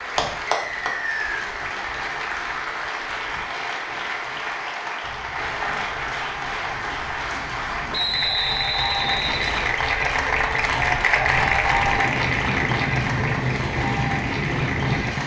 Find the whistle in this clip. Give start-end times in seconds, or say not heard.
0.5-1.5, 7.9-9.8.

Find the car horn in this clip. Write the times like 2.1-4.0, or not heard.
not heard.